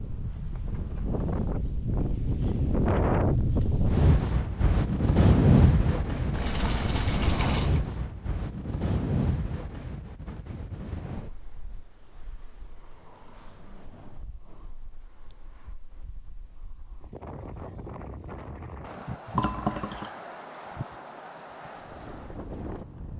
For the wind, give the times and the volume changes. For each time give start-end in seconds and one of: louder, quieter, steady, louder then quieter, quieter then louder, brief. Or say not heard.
0.0-23.1 quieter then louder.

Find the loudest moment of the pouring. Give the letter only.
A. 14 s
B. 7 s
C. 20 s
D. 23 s
C.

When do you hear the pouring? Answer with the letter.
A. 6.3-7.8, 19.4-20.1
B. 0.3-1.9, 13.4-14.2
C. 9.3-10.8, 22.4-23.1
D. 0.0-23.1
A.